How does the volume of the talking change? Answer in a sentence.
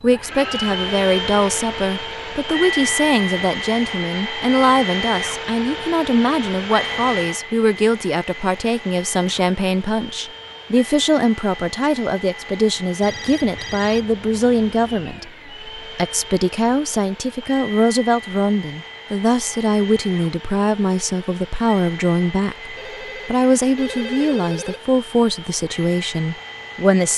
The volume of the talking stays about the same.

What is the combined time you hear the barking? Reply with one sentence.
You can't hear the barking here.